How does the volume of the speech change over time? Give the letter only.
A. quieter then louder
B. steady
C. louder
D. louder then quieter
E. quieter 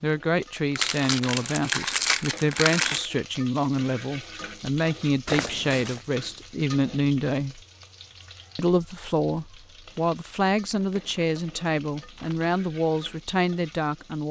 B.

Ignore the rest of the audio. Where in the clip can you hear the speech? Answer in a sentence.
The speech can be heard from 0.0 to 7.6 s and from 8.6 to 14.2 s.